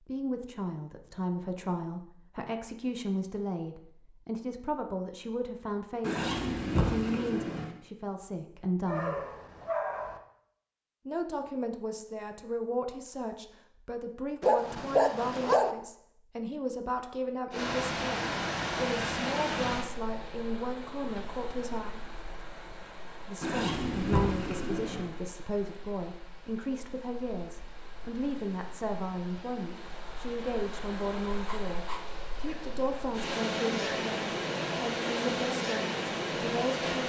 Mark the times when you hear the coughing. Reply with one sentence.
The coughing can't be heard in this clip.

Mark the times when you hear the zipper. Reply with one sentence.
You can hear the zipper from 6.0 to 7.7 s and from 23.4 to 25.1 s.